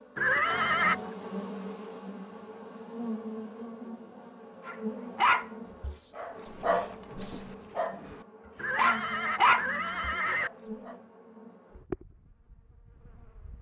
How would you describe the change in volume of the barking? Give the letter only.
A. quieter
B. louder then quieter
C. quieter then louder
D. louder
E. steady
C.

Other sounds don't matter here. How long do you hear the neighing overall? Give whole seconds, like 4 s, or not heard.
3 s.